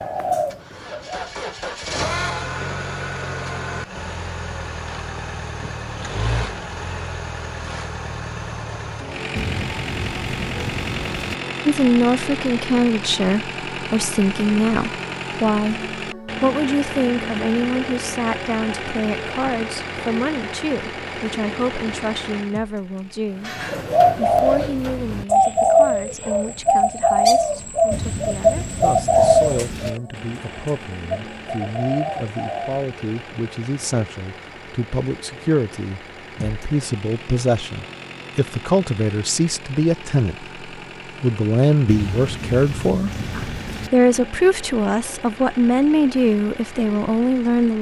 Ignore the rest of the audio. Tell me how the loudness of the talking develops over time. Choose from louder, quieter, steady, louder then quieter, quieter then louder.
quieter then louder.